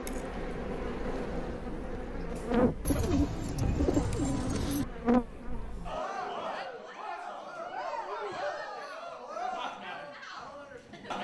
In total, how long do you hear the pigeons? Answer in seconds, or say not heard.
2 s.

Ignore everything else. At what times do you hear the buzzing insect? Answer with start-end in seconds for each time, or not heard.
0.0-6.5.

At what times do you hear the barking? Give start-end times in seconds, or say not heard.
not heard.